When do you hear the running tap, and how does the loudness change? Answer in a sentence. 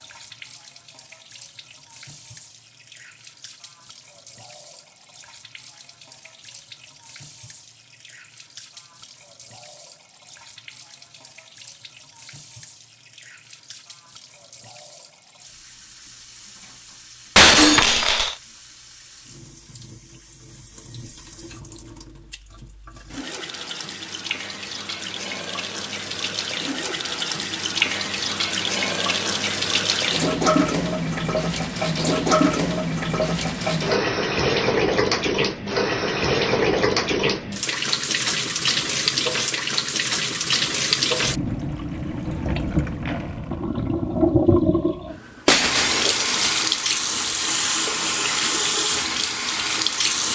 You can hear the running tap from 0.0 to 50.3 s, getting louder.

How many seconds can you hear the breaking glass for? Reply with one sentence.
The breaking glass can be heard for 2 seconds in total.